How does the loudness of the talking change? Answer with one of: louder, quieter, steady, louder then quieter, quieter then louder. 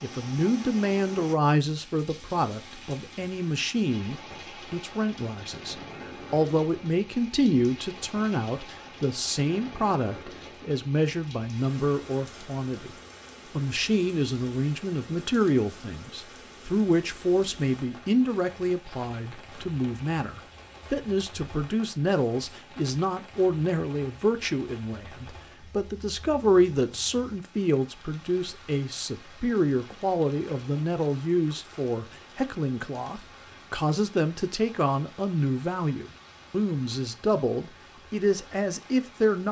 steady.